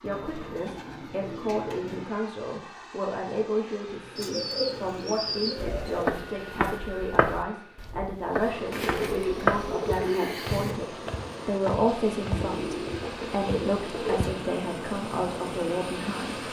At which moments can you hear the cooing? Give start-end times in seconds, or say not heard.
0.1-2.0, 4.2-6.0, 8.7-10.8, 12.3-14.3.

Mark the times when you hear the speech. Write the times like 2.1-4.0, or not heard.
0.0-16.4.